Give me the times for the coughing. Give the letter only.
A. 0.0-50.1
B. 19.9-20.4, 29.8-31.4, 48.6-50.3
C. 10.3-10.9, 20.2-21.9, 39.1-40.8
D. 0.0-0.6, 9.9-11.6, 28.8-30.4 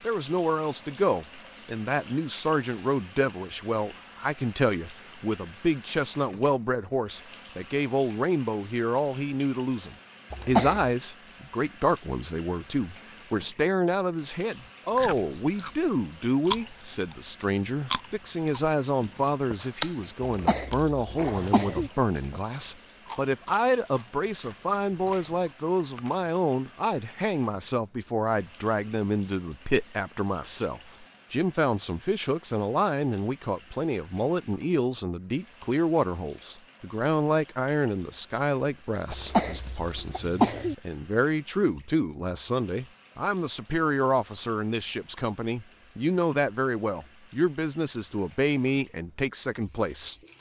C.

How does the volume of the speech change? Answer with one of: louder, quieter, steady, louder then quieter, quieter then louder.
steady.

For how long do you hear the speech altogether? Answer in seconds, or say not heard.
50 s.